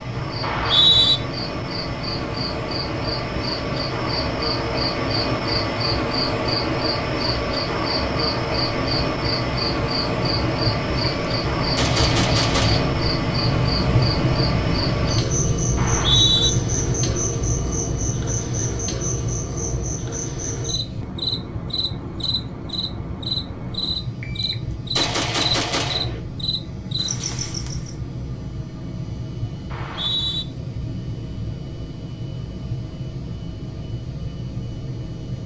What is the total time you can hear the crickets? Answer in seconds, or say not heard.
28 s.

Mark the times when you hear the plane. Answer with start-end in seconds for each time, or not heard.
0.0-35.4.